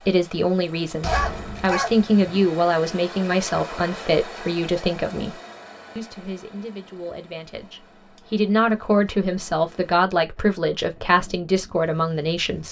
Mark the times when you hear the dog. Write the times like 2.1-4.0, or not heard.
1.0-2.5.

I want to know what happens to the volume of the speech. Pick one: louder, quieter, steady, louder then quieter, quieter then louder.
quieter then louder.